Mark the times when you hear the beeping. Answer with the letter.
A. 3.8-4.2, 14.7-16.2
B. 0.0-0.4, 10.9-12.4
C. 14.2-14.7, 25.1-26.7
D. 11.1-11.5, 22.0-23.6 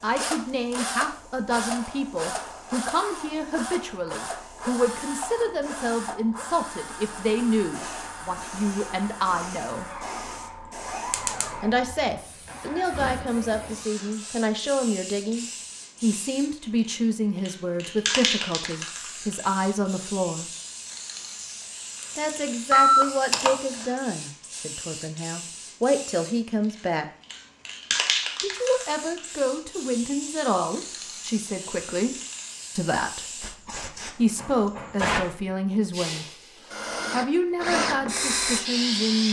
D.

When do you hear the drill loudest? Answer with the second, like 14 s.
38 s.